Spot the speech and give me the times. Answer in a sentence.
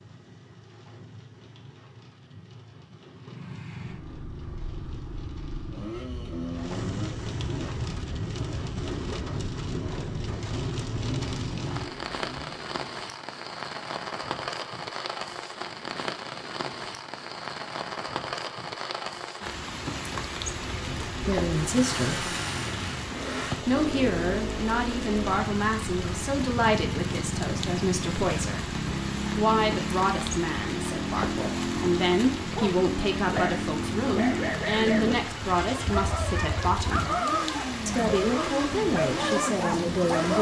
You can hear the speech from 21.2 to 22.3 s, from 23.6 to 28.6 s, from 29.4 to 37.0 s and from 37.9 to 40.3 s.